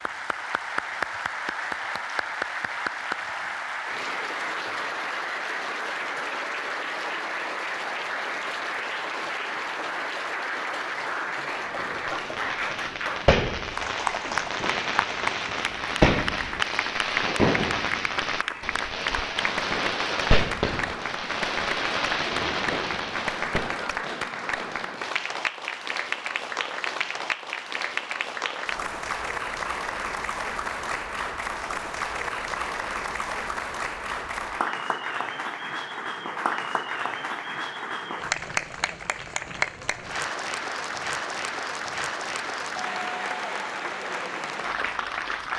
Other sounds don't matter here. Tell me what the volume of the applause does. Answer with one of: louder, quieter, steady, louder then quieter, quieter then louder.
steady.